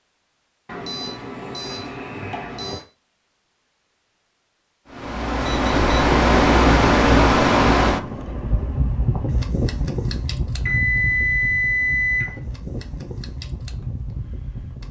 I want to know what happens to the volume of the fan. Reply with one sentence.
The loudness of the fan goes down.